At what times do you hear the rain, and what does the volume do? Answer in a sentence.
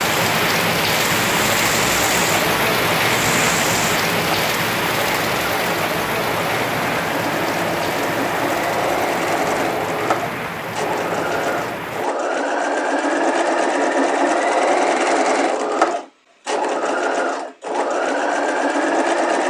You can hear the rain from 0.0 to 12.1 s, getting quieter.